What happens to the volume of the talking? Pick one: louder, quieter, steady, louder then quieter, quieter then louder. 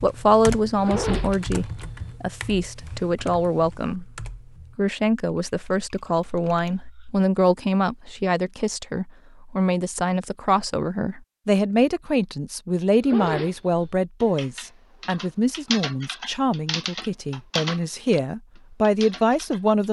steady.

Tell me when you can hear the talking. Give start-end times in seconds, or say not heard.
0.0-19.8.